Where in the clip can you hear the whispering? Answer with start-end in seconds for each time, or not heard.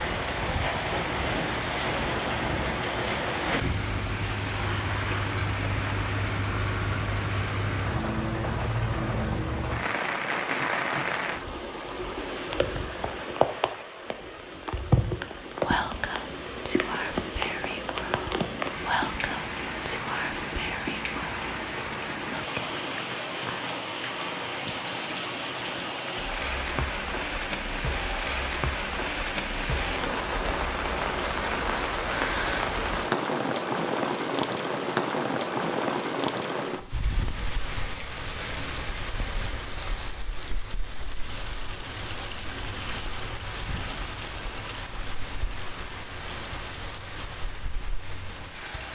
15.6-26.9.